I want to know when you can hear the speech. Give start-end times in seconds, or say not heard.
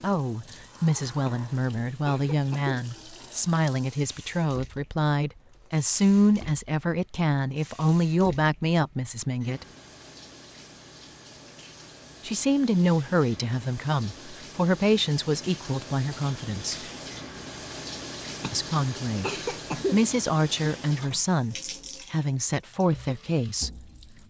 0.0-9.7, 12.2-16.8, 18.5-19.3, 19.9-23.7.